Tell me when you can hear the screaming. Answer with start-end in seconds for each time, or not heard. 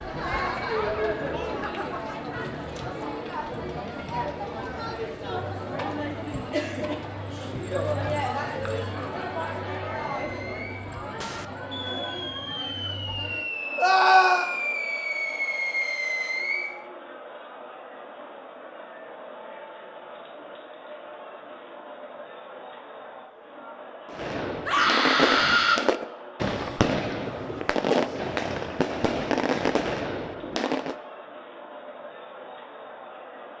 13.8-14.5, 24.6-25.8.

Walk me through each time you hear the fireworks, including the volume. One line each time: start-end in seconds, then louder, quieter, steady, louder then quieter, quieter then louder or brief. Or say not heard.
9.8-16.8 louder
24.1-30.9 steady.